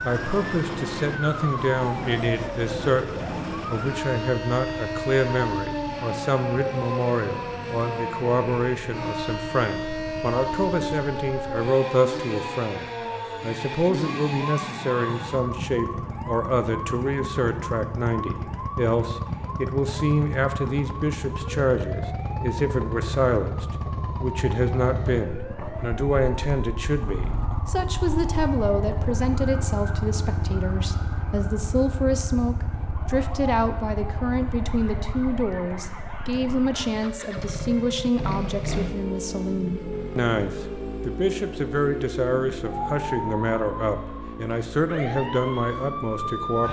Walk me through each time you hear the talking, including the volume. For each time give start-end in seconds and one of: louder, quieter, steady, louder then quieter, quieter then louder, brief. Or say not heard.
0.0-46.6 steady.